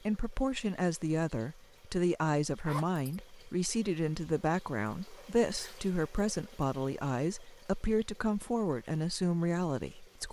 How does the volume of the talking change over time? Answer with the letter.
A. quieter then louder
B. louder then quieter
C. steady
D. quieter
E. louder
C.